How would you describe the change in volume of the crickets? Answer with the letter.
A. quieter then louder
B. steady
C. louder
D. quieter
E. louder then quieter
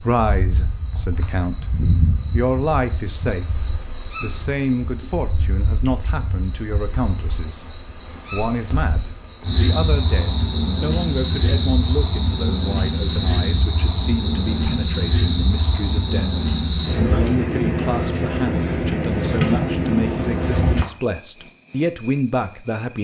C.